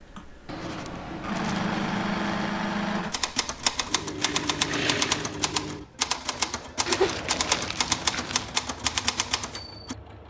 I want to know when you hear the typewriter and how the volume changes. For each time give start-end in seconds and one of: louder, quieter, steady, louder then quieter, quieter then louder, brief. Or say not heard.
3.0-9.9 steady.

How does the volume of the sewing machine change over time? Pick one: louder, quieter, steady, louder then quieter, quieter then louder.
quieter.